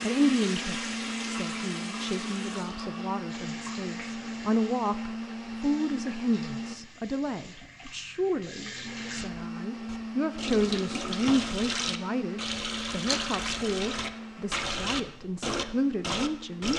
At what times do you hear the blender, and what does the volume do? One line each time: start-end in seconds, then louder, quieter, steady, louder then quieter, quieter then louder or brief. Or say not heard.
0.0-6.8 steady
8.8-16.7 quieter.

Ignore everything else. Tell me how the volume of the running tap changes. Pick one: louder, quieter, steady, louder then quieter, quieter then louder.
quieter then louder.